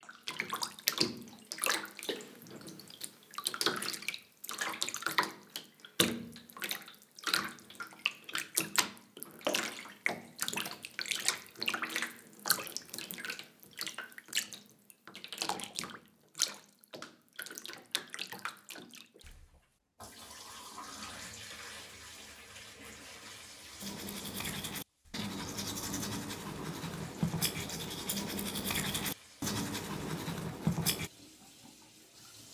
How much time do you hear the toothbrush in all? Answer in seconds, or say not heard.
7 s.